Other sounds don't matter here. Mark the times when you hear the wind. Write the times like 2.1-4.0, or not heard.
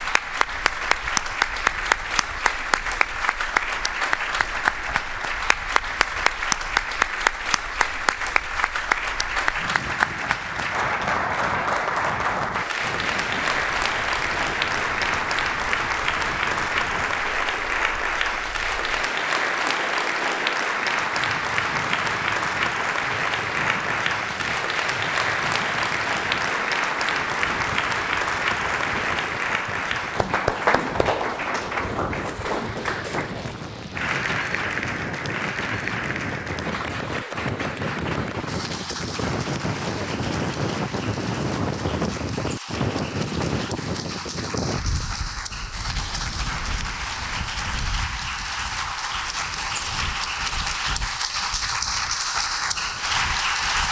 0.0-53.8.